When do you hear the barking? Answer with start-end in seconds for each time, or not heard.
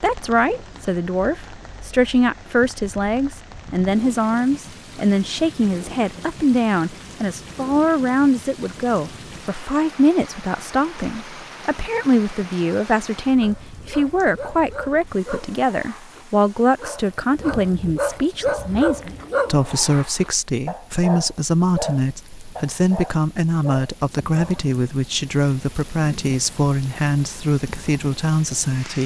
13.4-24.8.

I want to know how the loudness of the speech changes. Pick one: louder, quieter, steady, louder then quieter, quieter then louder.
steady.